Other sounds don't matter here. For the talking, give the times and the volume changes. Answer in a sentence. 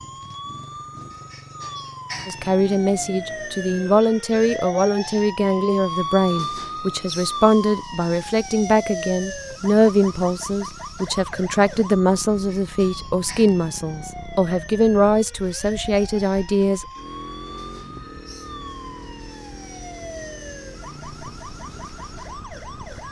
You can hear the talking from 2.2 to 16.9 s, at a steady volume.